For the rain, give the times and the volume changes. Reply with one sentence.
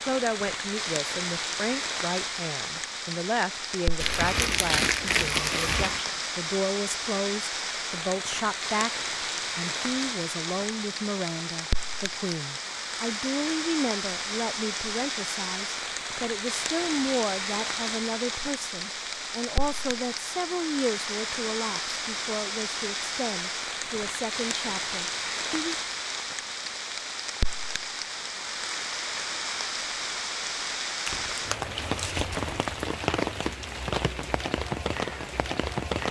The rain can be heard from 0.0 to 36.0 s, at a steady volume.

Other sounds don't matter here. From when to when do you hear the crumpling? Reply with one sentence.
You can hear the crumpling from 4.0 to 6.0 s and from 31.1 to 32.9 s.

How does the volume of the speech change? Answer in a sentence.
The volume of the speech stays about the same.